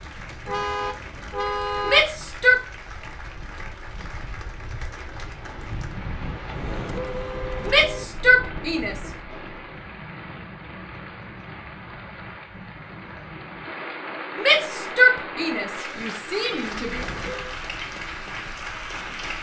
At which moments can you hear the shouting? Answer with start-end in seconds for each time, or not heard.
1.9-2.6, 7.7-9.1, 14.3-17.1.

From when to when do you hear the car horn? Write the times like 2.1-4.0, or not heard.
0.5-2.0, 6.5-8.1, 16.9-17.6.